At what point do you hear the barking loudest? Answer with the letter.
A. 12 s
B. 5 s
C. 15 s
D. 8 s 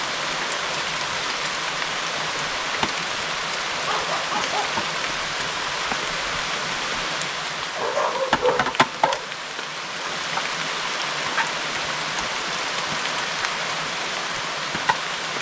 D.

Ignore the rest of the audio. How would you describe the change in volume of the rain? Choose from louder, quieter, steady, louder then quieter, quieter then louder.
steady.